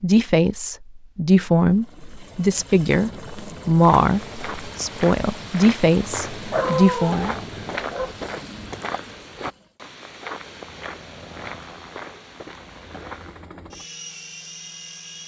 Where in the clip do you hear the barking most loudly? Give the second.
7 s.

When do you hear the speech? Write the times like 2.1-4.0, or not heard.
0.0-7.3.